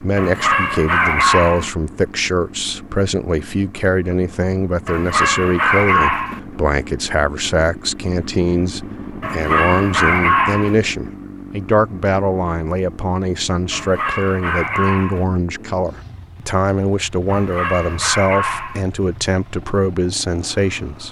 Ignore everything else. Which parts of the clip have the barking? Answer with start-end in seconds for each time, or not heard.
0.1-1.7, 4.8-6.4, 9.2-10.8, 13.7-15.2, 17.2-18.9.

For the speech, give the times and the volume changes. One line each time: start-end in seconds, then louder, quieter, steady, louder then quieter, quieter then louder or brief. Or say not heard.
0.0-21.0 steady.